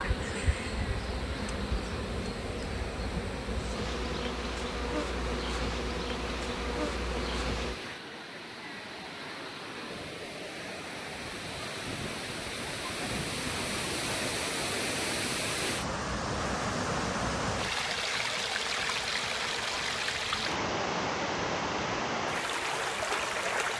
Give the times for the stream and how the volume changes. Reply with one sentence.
You can hear the stream from 0.0 to 23.7 s, getting louder.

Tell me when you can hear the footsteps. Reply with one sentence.
The footsteps can't be heard in this clip.